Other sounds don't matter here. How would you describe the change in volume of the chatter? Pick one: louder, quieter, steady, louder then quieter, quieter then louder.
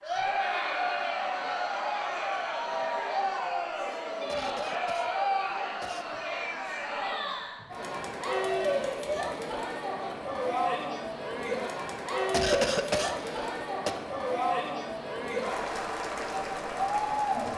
steady.